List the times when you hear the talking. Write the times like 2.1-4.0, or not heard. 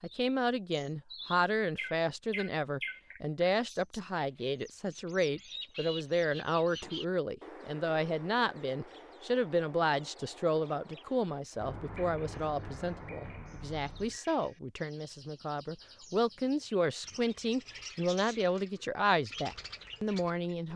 0.0-20.7.